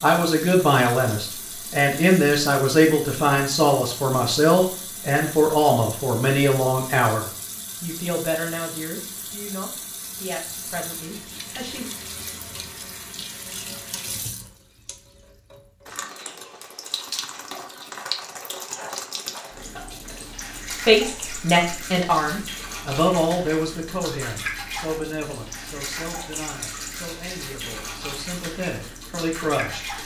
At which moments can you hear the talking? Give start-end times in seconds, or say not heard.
0.0-11.9, 20.9-29.9.